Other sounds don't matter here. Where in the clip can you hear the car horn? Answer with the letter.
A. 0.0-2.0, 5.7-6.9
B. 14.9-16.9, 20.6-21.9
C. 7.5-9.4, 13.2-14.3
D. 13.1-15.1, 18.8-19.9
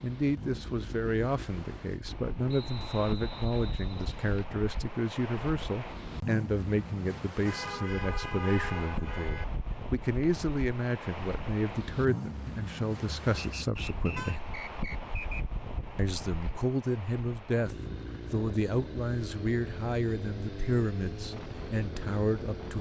C.